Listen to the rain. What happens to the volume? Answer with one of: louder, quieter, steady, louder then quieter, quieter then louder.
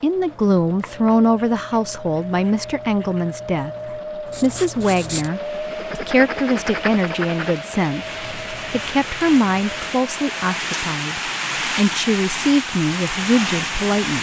louder.